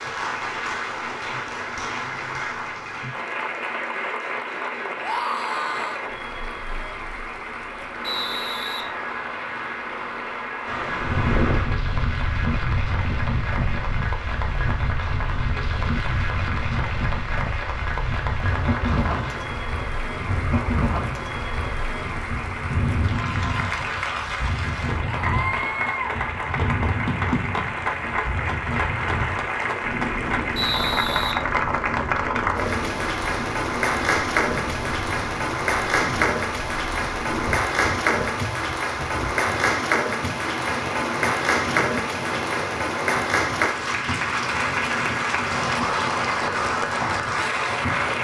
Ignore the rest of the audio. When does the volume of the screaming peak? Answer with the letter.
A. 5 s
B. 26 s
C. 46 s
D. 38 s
A.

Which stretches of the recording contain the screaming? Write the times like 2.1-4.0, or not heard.
5.0-6.0, 25.0-25.9.